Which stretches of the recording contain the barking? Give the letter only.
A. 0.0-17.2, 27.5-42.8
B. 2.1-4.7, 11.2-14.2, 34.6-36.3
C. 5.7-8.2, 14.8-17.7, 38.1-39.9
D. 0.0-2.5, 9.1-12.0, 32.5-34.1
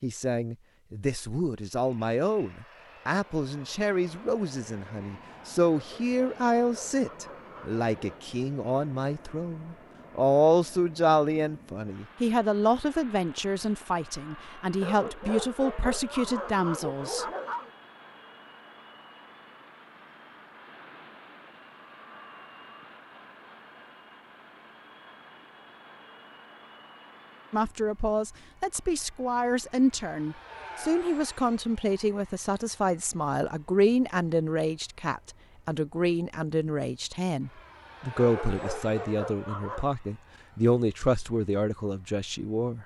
C.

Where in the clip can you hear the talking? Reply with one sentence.
The talking can be heard from 0.0 to 17.2 s and from 27.5 to 42.8 s.